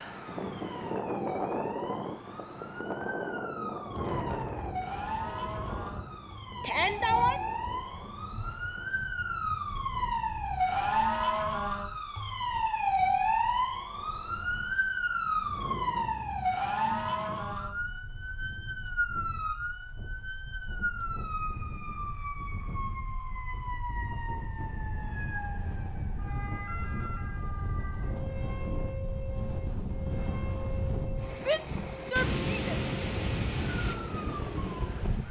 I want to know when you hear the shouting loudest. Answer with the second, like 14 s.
7 s.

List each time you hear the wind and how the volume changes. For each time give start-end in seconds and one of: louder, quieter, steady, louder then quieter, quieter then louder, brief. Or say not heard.
0.0-35.2 quieter then louder.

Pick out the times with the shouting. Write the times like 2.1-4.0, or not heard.
6.6-7.4, 31.4-32.8.